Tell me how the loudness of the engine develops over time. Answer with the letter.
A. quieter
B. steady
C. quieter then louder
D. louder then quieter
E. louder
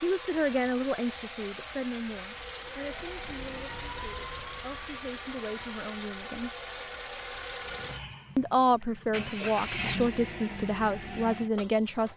B.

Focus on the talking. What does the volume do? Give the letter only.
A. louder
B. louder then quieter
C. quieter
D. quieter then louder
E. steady
D.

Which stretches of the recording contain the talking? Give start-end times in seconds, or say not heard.
0.0-6.5, 8.3-12.1.